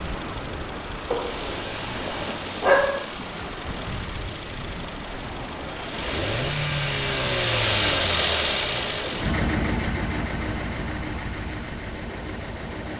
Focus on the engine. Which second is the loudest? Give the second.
8 s.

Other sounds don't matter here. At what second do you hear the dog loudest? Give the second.
3 s.